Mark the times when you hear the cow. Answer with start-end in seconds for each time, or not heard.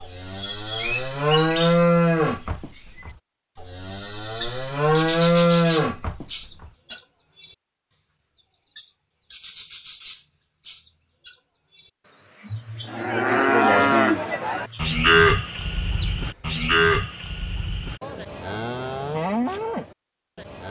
0.0-6.7, 12.8-20.6.